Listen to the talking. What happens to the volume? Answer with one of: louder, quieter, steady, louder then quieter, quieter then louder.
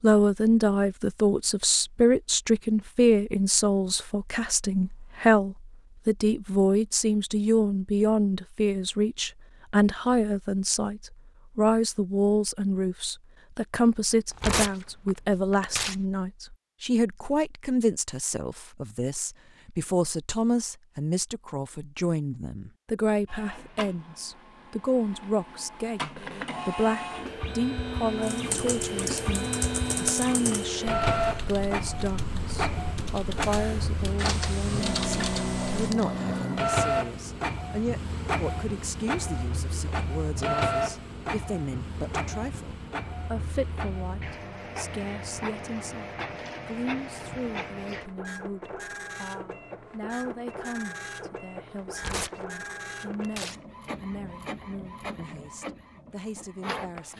quieter.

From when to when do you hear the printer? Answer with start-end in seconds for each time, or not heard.
23.2-57.1.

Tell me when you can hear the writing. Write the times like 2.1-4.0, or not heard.
not heard.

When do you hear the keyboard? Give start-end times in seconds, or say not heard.
28.2-36.0.